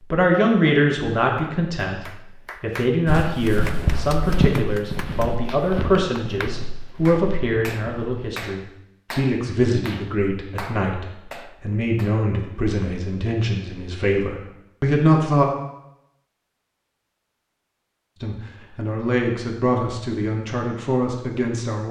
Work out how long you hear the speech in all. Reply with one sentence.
The speech can be heard for 19 seconds in total.